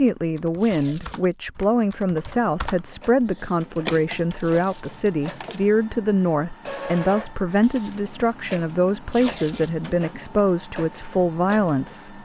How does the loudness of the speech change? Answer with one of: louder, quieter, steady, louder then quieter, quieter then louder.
steady.